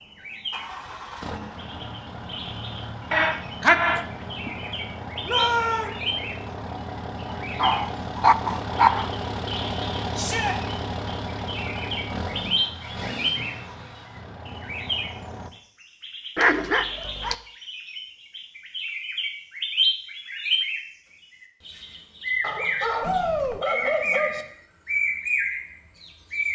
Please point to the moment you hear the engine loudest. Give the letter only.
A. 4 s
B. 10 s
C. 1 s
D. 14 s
B.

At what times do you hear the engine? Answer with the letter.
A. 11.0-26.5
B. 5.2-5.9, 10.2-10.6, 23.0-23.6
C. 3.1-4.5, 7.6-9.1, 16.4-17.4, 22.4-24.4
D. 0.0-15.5
D.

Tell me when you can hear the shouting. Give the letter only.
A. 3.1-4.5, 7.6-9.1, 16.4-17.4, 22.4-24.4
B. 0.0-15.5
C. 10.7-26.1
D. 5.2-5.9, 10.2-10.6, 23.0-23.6
D.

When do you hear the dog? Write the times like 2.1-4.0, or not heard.
3.1-4.5, 7.6-9.1, 16.4-17.4, 22.4-24.4.